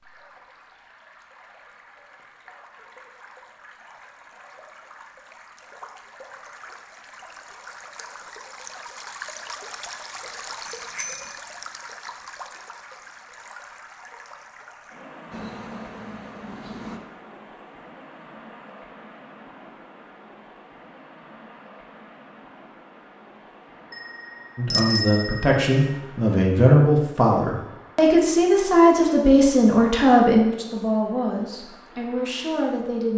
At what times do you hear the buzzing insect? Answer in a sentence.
You can hear the buzzing insect from 15.3 to 17.0 s.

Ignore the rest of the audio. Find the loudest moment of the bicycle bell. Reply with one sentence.
The loudest moment of the bicycle bell is at 25 seconds.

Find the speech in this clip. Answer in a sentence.
The speech can be heard from 24.6 to 33.1 s.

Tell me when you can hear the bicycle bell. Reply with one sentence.
You can hear the bicycle bell from 10.7 to 11.3 s and from 23.9 to 25.6 s.